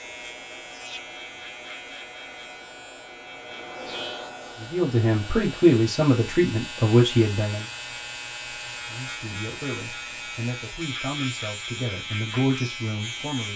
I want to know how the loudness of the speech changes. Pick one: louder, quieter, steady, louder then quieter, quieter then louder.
quieter then louder.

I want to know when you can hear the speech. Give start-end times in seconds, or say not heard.
4.6-7.7, 8.8-13.5.